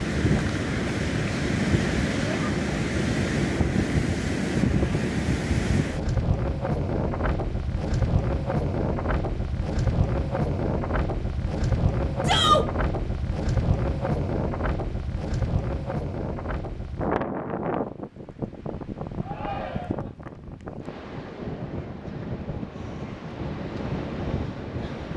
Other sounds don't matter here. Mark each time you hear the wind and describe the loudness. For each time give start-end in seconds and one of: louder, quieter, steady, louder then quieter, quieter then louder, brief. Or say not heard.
0.0-25.1 quieter.